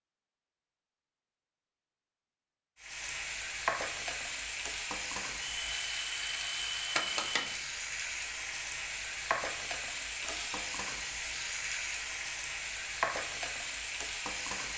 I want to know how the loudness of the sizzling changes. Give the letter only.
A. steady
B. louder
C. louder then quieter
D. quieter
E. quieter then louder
A.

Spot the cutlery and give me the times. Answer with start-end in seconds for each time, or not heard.
10.2-10.7.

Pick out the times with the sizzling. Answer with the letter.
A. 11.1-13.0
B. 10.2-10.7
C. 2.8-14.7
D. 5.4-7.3
C.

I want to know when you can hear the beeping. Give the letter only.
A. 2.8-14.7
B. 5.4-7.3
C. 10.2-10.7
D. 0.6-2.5
B.